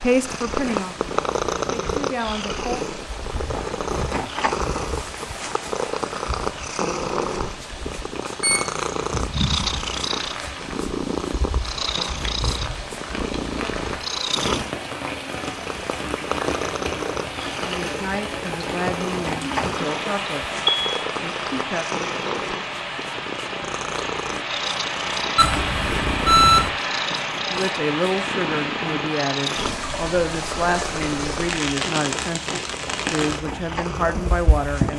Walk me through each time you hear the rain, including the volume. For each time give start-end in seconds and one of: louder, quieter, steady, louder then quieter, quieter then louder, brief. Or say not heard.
0.0-34.9 louder.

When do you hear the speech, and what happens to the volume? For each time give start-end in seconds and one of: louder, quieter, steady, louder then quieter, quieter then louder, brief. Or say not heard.
0.0-2.9 brief
17.6-21.9 quieter
27.5-34.9 steady.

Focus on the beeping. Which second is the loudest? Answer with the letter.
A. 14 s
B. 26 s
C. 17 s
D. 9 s
B.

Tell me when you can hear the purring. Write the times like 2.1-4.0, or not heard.
0.0-34.9.